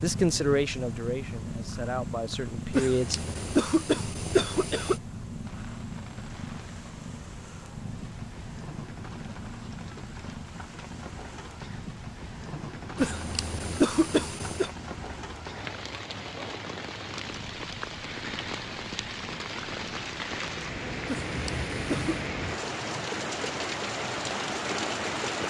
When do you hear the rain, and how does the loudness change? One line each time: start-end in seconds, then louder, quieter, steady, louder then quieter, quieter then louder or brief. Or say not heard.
5.5-25.4 louder.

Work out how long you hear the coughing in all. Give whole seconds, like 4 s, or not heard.
5 s.